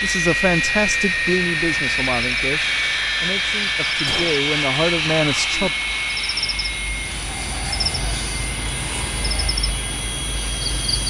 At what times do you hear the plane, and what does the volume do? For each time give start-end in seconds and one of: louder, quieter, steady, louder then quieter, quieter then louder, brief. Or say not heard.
0.0-11.0 quieter.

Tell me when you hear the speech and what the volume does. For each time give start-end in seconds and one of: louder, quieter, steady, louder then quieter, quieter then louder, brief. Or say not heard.
0.0-5.8 quieter then louder.